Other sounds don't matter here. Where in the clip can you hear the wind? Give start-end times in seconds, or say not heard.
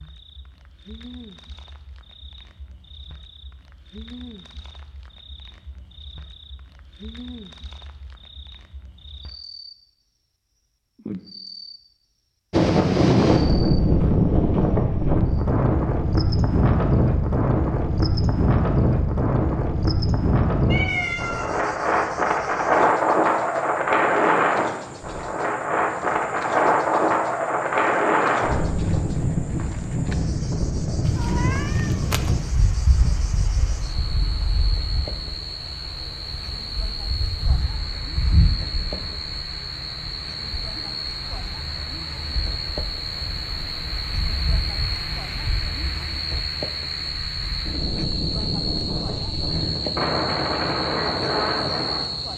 12.5-52.3.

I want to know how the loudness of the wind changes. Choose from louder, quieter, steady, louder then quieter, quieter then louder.
quieter then louder.